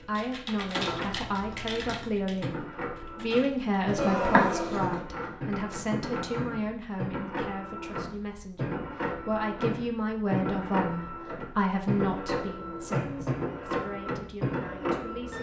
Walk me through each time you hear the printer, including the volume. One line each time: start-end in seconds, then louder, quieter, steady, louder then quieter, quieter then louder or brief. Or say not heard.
0.0-15.3 louder.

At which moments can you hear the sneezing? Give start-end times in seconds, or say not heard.
4.0-5.0.